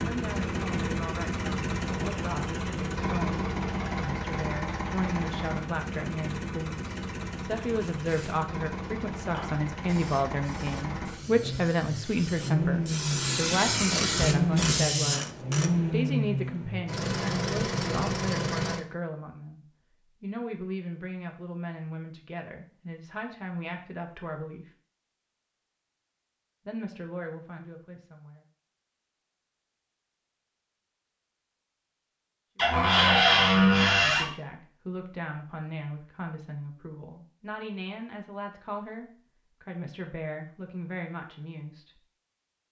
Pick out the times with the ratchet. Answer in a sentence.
The ratchet can be heard from 13.7 to 15.8 s.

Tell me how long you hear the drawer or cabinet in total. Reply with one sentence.
You can hear the drawer or cabinet for 2 seconds altogether.